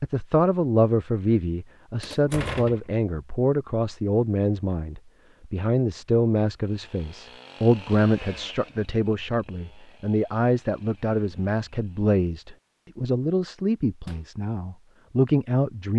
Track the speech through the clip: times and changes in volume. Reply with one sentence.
You can hear the speech from 0.0 to 15.9 s, at a steady volume.